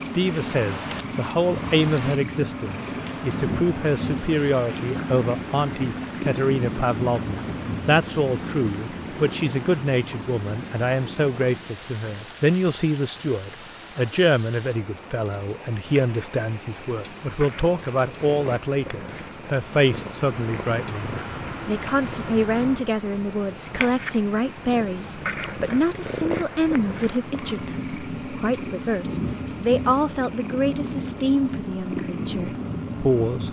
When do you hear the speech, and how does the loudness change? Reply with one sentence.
The speech can be heard from 0.0 to 33.4 s, at a steady volume.